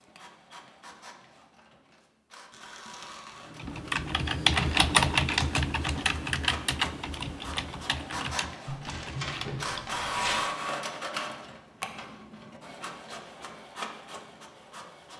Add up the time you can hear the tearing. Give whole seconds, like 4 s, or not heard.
3 s.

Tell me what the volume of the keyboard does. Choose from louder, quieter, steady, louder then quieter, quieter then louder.
quieter.